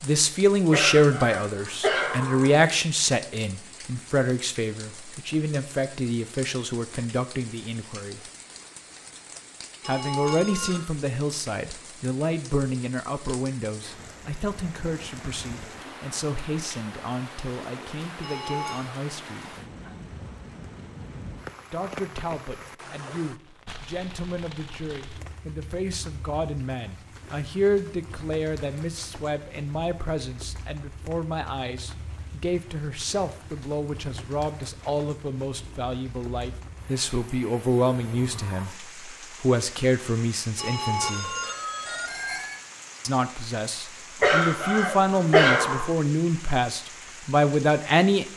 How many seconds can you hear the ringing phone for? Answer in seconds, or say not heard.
4 s.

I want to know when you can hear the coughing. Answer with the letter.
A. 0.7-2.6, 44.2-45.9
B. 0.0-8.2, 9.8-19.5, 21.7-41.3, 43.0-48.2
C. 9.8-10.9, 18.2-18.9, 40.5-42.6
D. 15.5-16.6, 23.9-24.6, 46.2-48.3
A.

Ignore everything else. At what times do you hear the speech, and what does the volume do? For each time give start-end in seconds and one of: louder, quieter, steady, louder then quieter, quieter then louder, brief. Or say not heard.
0.0-8.2 quieter
9.8-19.5 quieter
21.7-41.3 louder
43.0-48.2 louder.